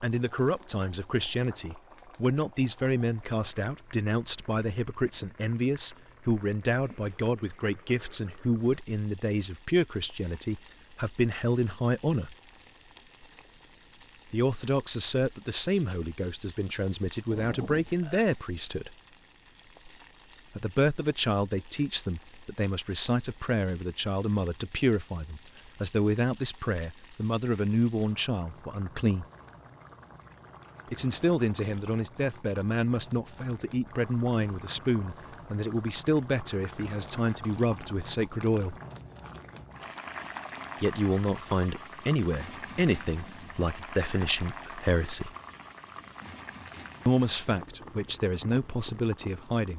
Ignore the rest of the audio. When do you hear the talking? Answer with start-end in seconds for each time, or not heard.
0.0-12.3, 14.3-18.9, 20.6-29.2, 30.9-38.8, 40.8-45.3, 47.0-49.7.